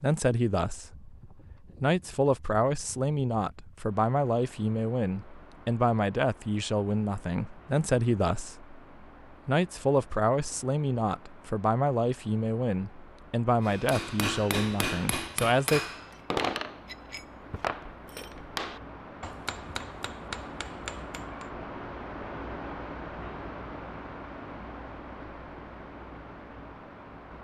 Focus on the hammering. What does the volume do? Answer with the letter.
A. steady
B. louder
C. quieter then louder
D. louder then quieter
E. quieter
E.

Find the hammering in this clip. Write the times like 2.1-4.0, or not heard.
13.7-21.5.